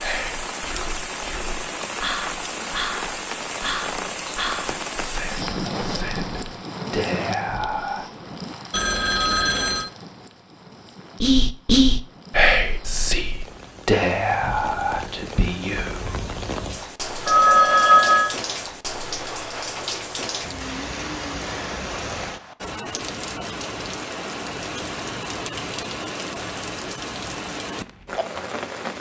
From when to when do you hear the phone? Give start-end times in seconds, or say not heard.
8.7-9.9, 17.2-18.4.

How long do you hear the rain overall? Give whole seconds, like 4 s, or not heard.
29 s.